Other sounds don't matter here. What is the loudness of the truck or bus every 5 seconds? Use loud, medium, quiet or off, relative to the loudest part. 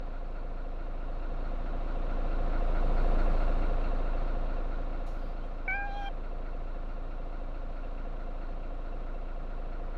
loud, medium.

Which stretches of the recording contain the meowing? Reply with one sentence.
The meowing can be heard from 5.1 to 6.1 s.